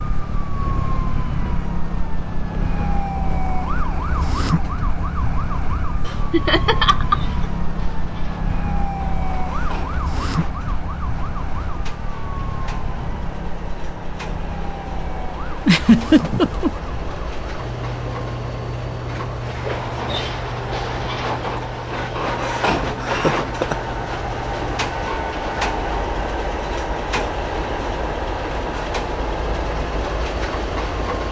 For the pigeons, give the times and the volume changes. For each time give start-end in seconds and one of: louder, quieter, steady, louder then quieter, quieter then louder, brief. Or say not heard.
not heard.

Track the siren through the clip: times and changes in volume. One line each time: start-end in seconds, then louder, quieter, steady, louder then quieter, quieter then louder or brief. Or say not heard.
0.0-24.9 quieter.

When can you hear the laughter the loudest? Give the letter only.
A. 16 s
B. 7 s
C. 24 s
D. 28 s
A.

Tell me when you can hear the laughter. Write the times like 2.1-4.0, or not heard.
6.3-7.5, 15.7-16.7, 23.0-23.8.